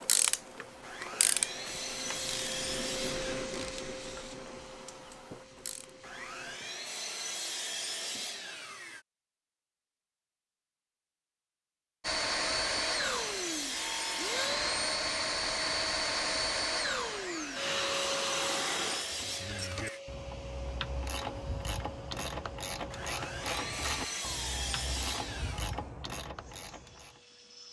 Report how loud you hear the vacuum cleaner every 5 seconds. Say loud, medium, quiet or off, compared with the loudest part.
medium, quiet, loud, loud, quiet, quiet.